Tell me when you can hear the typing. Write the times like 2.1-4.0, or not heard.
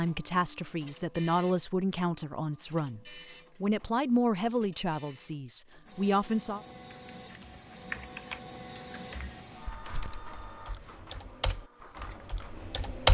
6.9-13.0.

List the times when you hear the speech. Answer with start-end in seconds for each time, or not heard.
0.0-6.6.